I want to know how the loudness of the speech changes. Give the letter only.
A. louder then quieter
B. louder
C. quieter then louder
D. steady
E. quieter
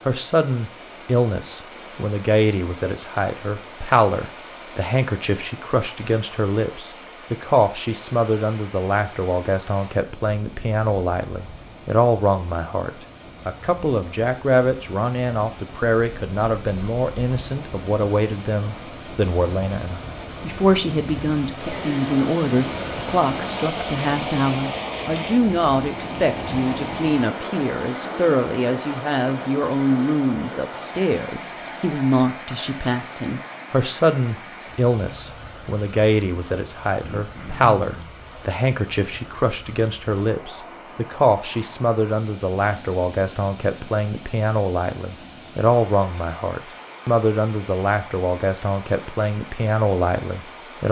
D.